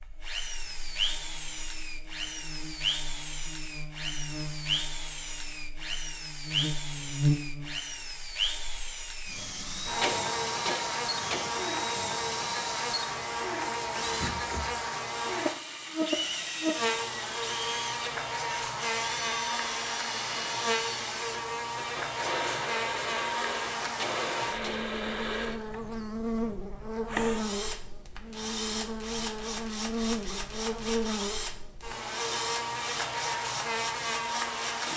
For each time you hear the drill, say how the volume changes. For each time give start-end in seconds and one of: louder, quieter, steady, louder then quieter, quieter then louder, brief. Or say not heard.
0.0-34.9 steady.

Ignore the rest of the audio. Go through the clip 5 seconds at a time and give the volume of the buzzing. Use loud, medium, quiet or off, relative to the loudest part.
quiet, loud, loud, loud, loud, loud, loud.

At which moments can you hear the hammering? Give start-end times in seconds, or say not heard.
9.7-11.5, 23.8-24.9.